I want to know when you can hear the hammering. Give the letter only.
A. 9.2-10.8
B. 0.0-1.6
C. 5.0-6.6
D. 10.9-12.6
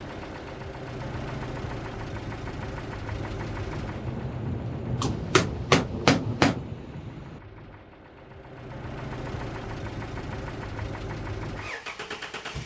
C.